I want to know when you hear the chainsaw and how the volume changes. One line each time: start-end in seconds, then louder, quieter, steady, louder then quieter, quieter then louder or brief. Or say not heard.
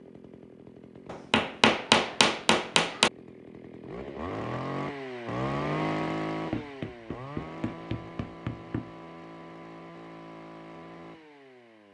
0.0-11.8 louder then quieter.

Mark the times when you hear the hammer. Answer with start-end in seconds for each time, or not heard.
1.1-3.1, 6.5-8.9.